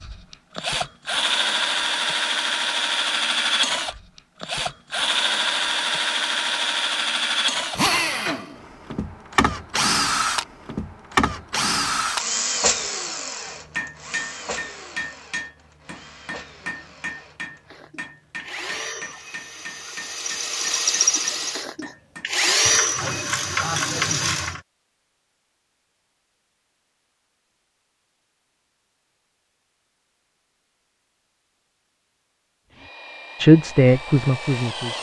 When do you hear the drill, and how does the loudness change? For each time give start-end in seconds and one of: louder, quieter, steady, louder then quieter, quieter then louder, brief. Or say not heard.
0.0-24.6 quieter then louder
32.7-34.9 brief.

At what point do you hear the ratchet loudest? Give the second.
24 s.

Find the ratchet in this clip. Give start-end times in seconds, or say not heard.
22.6-24.6.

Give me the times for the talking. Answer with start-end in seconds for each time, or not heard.
33.4-34.9.